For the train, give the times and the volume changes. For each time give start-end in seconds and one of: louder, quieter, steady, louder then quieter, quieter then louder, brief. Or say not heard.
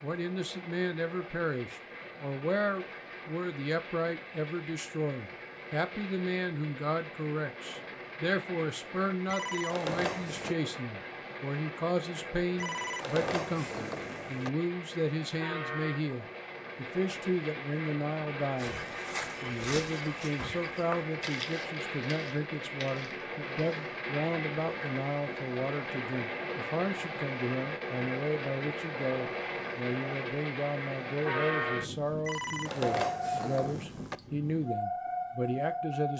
0.0-36.1 louder.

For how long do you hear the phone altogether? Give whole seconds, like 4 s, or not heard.
5 s.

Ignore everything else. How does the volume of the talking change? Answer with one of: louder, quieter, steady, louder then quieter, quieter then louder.
steady.